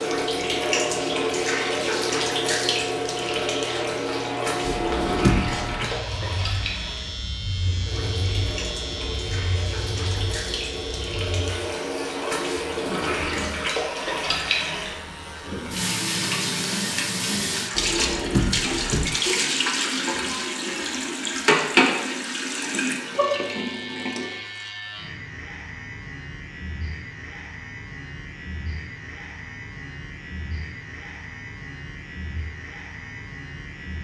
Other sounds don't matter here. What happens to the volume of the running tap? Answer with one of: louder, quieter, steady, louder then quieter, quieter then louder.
quieter then louder.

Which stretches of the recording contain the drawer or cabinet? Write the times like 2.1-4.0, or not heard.
4.7-5.9, 17.8-19.1.